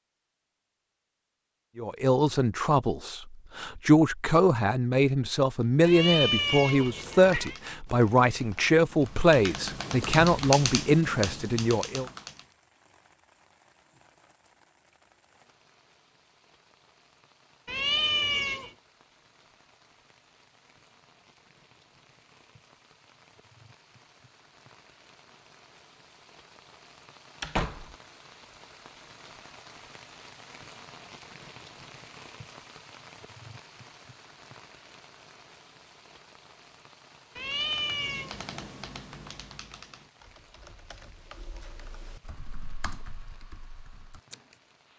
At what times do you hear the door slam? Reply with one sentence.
The door slam can be heard from 27.4 to 27.9 s.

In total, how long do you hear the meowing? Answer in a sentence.
The meowing can be heard for 4 seconds in total.